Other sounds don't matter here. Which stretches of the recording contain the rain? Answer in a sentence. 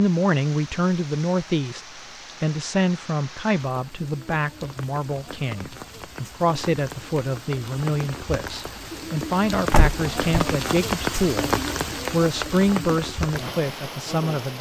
The rain can be heard from 0.0 to 14.5 s.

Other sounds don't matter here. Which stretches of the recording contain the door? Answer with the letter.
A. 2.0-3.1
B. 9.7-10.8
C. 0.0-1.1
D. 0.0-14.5
B.